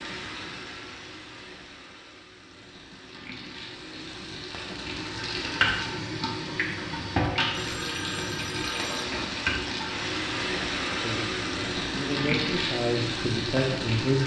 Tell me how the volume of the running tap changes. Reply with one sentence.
The loudness of the running tap goes up.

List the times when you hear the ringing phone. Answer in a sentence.
The ringing phone can be heard from 7.5 to 9.1 s.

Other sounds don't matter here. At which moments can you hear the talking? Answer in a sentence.
The talking can be heard from 11.0 to 14.2 s.